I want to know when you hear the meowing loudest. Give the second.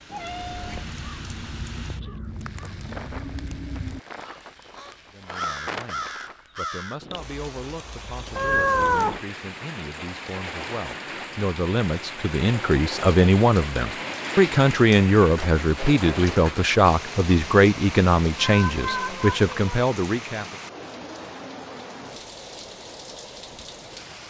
9 s.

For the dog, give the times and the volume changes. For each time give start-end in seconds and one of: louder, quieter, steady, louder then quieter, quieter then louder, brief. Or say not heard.
not heard.